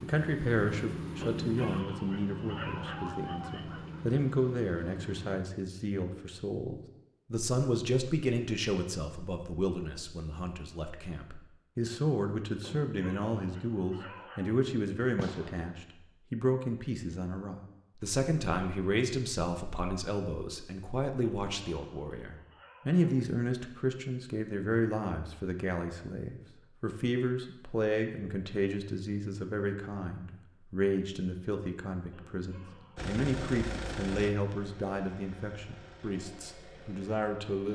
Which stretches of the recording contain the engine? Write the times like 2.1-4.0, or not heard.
0.0-5.4, 33.0-37.7.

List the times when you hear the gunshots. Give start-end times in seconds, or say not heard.
15.2-15.8.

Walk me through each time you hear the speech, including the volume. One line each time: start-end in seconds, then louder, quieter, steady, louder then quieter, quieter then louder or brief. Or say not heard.
0.0-37.7 steady.